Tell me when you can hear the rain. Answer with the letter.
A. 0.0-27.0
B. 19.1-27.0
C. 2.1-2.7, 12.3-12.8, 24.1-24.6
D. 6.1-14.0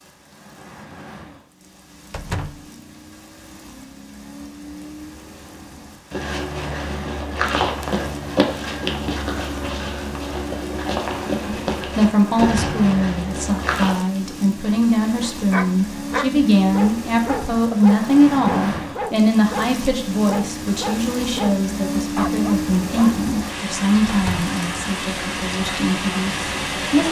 A.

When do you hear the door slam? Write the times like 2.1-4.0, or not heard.
2.1-2.7, 12.3-12.8, 24.1-24.6.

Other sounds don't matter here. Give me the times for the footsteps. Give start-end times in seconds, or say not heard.
6.1-14.0.